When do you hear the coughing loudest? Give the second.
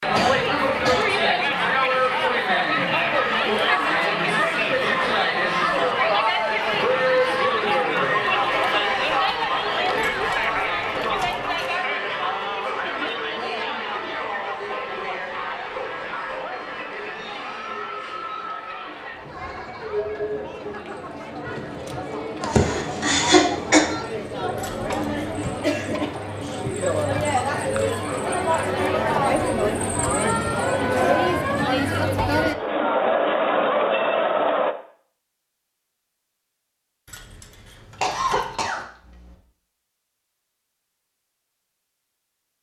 23 s.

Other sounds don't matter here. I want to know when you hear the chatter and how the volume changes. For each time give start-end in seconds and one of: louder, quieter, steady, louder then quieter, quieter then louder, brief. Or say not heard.
0.0-34.8 quieter then louder.